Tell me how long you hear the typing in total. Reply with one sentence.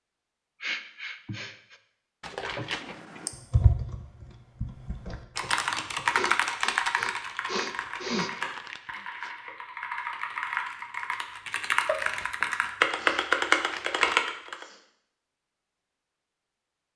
The typing can be heard for 12 seconds in total.